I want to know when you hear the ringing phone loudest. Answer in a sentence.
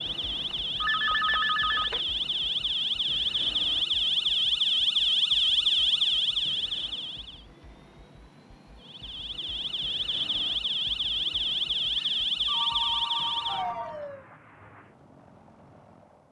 The volume of the ringing phone peaks at 1 second.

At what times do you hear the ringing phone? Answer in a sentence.
The ringing phone can be heard from 0.5 to 2.0 s and from 11.9 to 14.0 s.